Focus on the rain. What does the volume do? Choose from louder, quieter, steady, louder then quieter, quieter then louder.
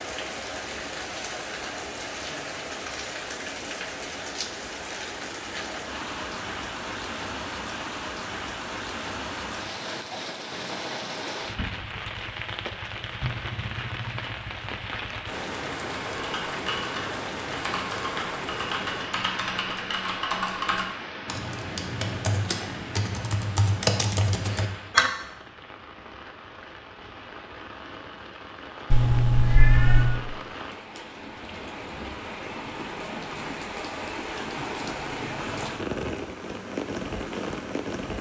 quieter then louder.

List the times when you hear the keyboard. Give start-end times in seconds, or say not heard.
16.1-25.1.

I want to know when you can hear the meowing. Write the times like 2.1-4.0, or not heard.
28.9-30.2.